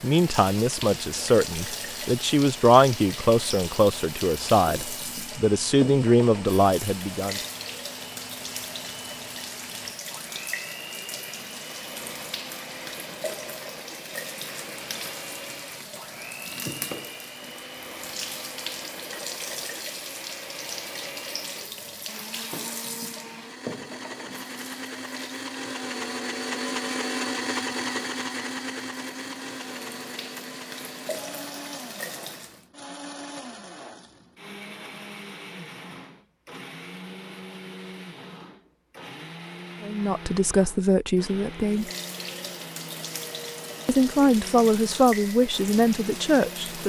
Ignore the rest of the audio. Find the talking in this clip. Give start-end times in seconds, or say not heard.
0.0-7.4, 39.8-41.9, 43.9-46.8.